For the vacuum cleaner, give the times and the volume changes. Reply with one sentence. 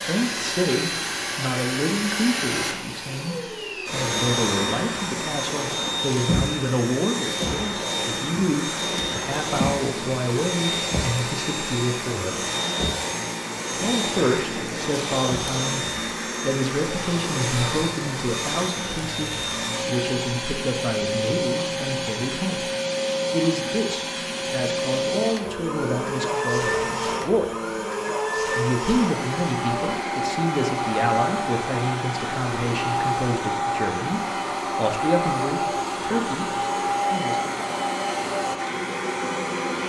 The vacuum cleaner can be heard from 0.0 to 39.8 s, at a steady volume.